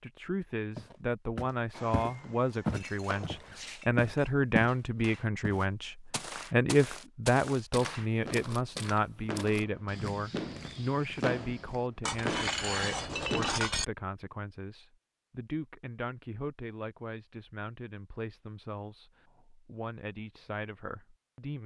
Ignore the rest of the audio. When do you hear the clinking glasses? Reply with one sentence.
The clinking glasses can be heard from 2.5 to 4.3 s and from 12.0 to 13.8 s.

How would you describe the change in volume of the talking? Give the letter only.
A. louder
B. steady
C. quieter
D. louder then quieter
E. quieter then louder
C.